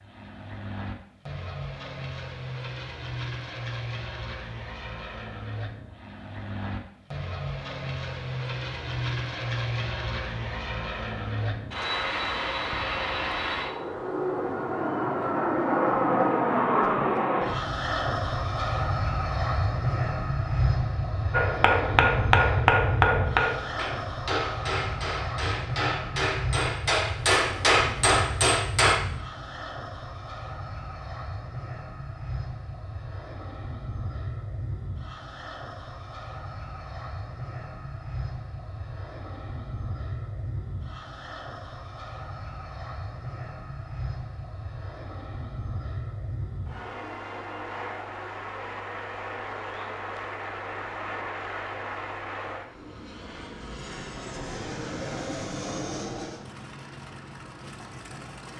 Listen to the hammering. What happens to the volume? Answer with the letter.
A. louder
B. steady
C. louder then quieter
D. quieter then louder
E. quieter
D.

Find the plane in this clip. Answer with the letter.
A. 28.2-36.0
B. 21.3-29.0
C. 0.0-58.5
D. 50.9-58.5
C.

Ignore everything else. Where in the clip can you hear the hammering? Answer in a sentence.
The hammering can be heard from 21.3 to 29.0 s.